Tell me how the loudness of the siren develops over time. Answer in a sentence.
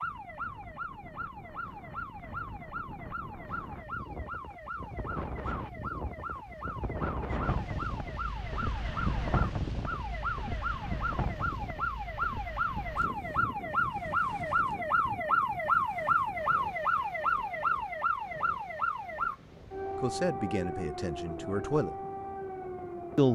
The loudness of the siren goes up, then down.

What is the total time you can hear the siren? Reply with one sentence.
You can hear the siren for 23 seconds altogether.